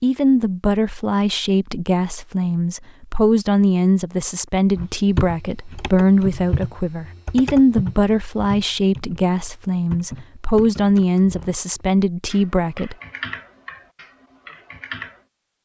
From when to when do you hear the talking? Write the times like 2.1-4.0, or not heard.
0.0-12.9.